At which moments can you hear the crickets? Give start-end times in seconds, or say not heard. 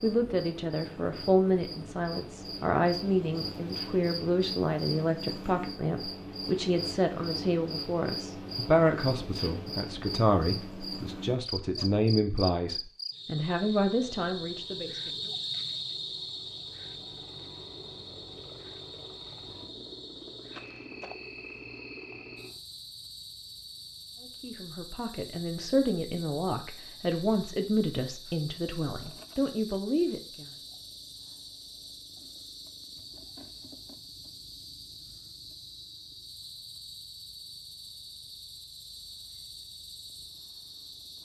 0.0-41.1.